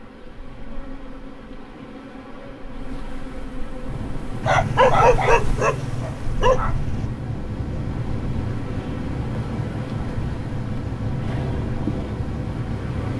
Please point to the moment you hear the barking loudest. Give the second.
5 s.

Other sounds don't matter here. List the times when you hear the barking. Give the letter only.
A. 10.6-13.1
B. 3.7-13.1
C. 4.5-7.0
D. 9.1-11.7
C.